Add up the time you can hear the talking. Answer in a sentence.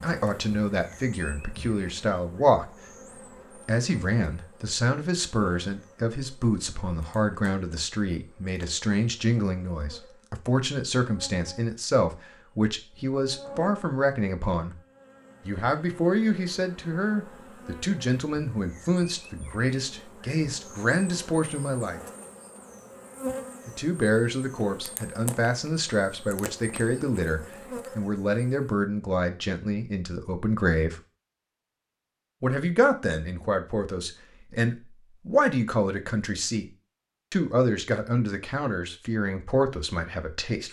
You can hear the talking for 35 seconds altogether.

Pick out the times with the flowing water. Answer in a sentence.
The flowing water can't be heard in this clip.